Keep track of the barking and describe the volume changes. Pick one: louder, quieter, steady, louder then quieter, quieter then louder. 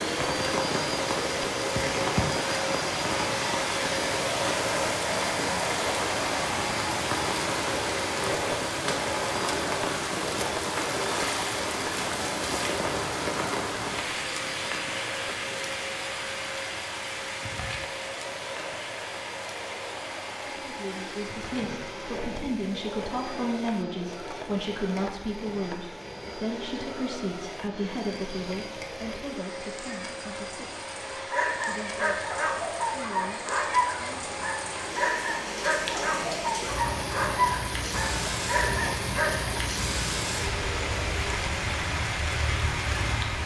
steady.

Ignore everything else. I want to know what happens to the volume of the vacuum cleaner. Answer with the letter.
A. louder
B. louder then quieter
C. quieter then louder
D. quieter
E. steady
D.